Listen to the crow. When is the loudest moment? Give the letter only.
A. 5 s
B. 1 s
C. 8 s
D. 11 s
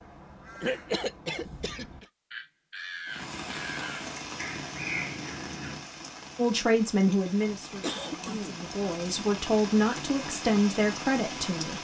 A.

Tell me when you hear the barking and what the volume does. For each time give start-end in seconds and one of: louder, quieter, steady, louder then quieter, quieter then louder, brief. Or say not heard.
not heard.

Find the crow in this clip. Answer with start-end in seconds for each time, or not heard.
0.0-5.8.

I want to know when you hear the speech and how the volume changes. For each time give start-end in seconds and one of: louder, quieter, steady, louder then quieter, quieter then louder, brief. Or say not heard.
6.3-11.7 quieter then louder.